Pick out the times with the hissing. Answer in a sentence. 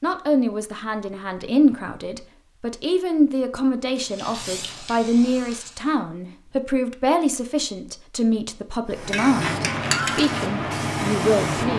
You can hear the hissing from 3.9 to 6.0 s and from 8.9 to 11.7 s.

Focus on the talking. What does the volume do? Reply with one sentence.
The loudness of the talking stays about the same.